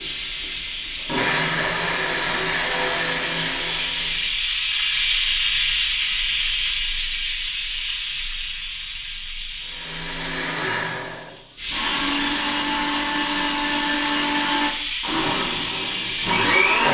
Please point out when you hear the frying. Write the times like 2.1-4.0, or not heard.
0.0-16.6.